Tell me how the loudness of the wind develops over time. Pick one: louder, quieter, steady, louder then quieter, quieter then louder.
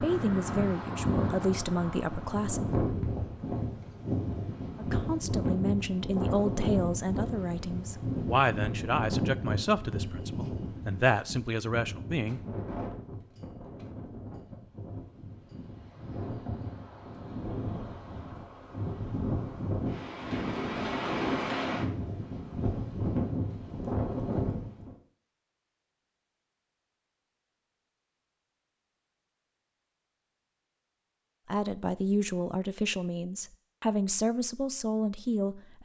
quieter then louder.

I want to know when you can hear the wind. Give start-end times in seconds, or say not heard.
0.0-24.9.